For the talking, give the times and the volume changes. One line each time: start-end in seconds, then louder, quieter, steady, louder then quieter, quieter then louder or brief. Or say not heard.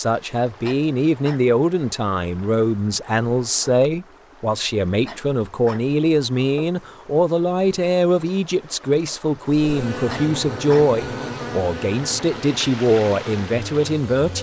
0.0-14.3 steady.